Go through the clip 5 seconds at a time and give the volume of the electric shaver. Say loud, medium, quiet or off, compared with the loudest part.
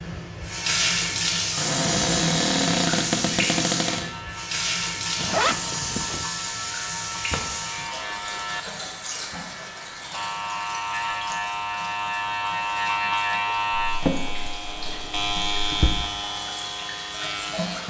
quiet, medium, loud, loud.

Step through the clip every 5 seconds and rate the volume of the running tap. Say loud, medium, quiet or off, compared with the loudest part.
loud, medium, quiet, medium.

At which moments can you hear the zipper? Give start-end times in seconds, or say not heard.
5.2-6.2.